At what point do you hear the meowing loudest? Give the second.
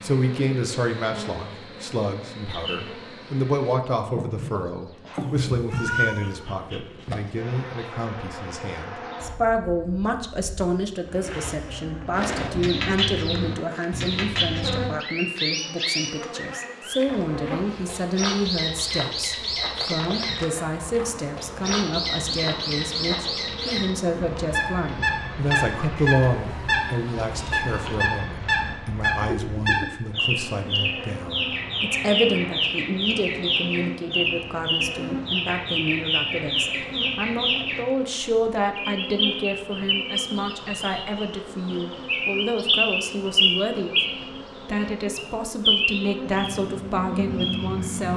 6 s.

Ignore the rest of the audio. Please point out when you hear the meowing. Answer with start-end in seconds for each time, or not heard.
5.2-6.5, 25.9-27.9.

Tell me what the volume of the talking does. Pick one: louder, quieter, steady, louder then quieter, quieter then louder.
steady.